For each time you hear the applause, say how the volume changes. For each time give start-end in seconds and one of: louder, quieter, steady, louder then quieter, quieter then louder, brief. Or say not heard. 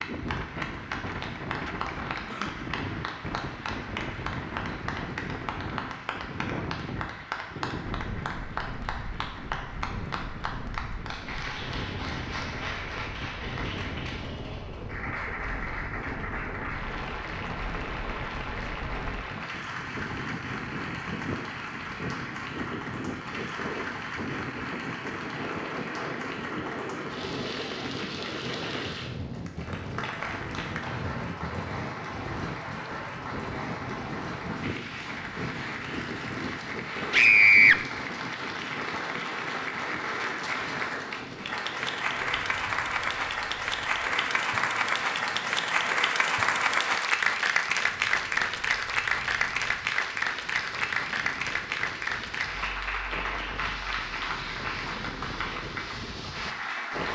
0.0-57.0 louder.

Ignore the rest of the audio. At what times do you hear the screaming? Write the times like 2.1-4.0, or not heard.
37.1-37.8.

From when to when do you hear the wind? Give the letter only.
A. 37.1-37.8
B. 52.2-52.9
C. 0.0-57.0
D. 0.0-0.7
C.